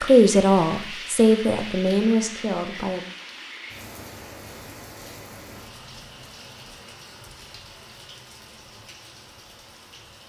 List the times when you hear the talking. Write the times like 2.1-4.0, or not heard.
0.0-3.0.